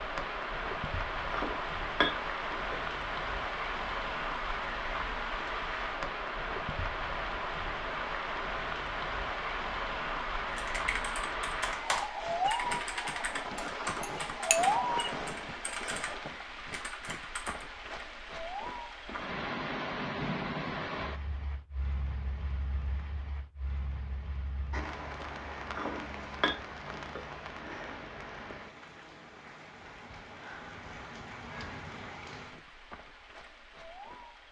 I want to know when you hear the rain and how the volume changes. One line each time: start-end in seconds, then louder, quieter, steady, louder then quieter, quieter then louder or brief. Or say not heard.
0.0-34.4 quieter.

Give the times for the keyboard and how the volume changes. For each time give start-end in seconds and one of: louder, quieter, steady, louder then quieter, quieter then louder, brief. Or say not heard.
10.6-17.6 quieter.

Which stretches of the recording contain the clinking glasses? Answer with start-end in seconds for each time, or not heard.
1.3-2.8, 14.0-14.6, 25.7-27.2.